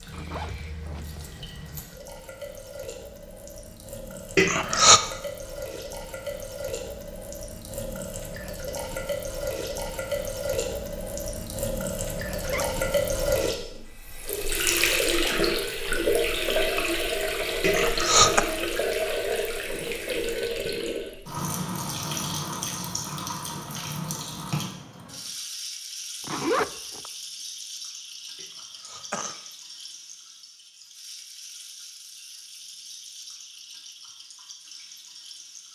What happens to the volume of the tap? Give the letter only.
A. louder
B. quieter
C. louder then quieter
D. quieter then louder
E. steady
C.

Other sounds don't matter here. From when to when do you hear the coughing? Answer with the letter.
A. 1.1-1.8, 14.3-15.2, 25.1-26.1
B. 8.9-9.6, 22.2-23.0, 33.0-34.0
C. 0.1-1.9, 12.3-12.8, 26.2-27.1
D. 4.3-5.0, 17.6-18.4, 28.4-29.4
D.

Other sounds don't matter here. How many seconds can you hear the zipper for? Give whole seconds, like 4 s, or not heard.
3 s.